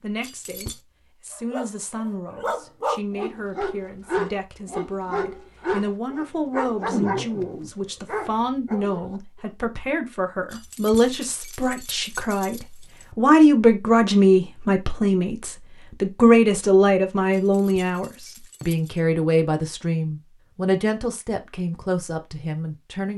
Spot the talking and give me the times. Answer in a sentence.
The talking can be heard from 0.0 to 23.1 s.